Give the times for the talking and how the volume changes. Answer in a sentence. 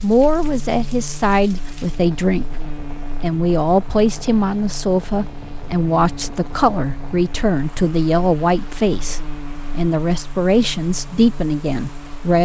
You can hear the talking from 0.0 to 12.4 s, at a steady volume.